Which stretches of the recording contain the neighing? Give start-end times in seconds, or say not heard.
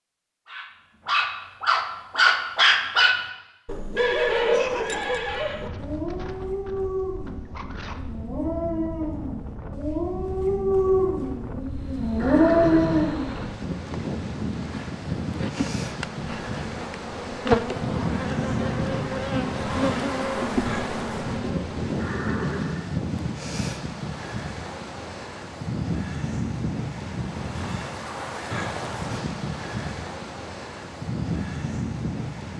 4.0-5.6, 12.2-13.3, 21.9-22.9.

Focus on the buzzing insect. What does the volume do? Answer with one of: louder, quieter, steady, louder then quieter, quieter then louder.
louder.